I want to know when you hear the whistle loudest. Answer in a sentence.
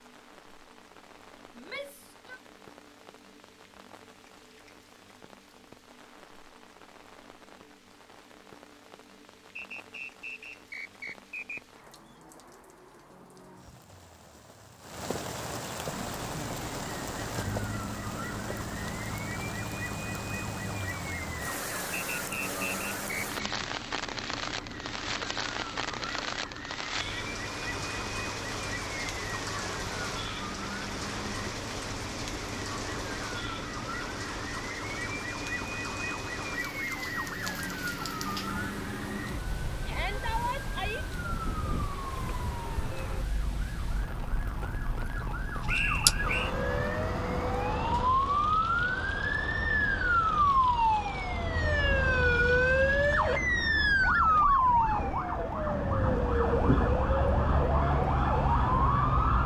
The volume of the whistle peaks at 46 seconds.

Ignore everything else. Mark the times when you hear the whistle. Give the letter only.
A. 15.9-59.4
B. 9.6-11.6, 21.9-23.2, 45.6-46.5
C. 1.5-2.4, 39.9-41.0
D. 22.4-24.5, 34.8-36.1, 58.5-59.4
B.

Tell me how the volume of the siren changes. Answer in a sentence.
The volume of the siren goes up.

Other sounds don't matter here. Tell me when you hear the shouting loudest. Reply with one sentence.
The volume of the shouting peaks at 40 seconds.